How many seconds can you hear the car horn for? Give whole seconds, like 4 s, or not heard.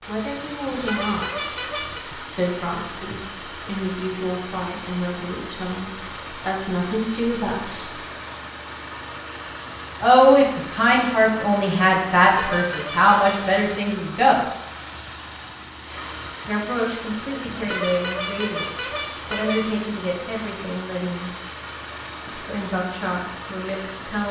5 s.